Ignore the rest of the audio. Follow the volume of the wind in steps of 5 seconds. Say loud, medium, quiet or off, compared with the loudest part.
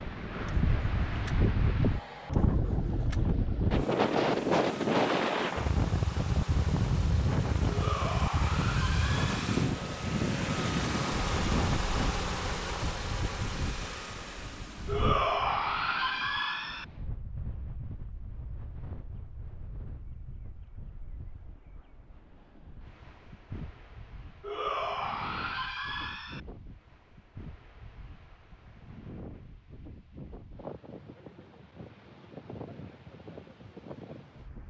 loud, loud, medium, quiet, quiet, quiet, quiet.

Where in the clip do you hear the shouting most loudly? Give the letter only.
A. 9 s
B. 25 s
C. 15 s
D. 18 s
C.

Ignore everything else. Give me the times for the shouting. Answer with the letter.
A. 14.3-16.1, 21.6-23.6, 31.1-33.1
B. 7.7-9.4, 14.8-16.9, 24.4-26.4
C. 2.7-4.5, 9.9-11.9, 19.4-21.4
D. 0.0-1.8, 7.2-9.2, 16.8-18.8
B.